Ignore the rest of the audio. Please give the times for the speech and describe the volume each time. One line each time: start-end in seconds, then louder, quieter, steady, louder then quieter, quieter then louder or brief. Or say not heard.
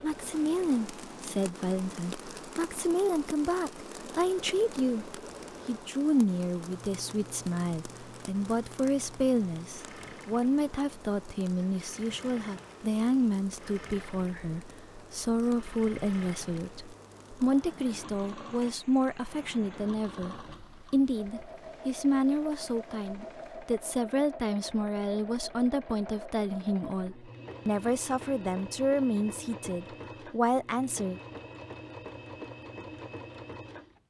0.0-31.2 steady.